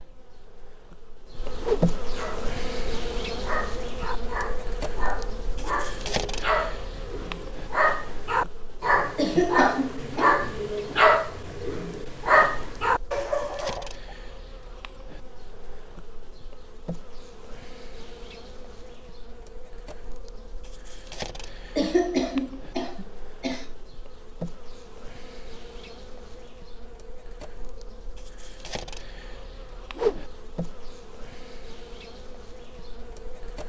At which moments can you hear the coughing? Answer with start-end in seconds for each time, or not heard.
9.2-10.3, 21.8-23.6.